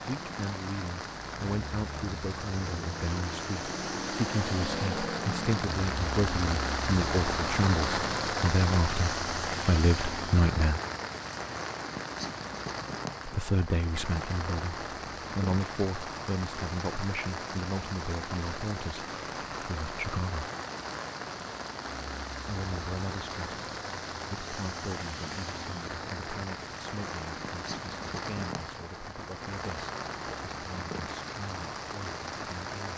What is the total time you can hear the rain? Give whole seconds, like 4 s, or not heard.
33 s.